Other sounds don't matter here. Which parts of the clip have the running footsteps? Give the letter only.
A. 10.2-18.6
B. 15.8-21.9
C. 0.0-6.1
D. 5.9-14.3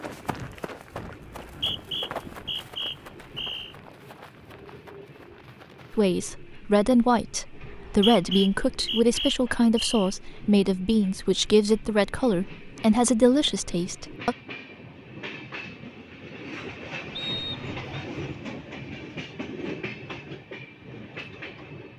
C.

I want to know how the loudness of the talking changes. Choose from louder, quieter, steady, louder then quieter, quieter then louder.
steady.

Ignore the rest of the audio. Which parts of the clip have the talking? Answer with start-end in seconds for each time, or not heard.
5.9-14.3.